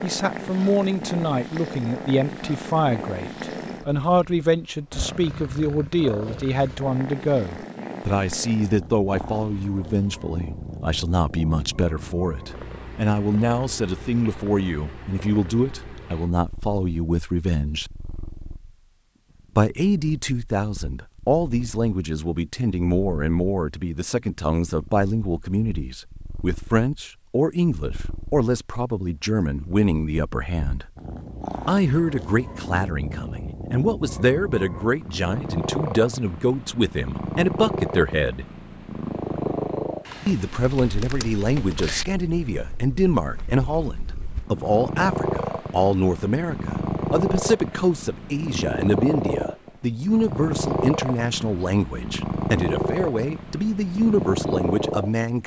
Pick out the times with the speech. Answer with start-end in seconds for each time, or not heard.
0.0-17.9, 19.6-30.9, 31.6-38.5, 40.2-55.4.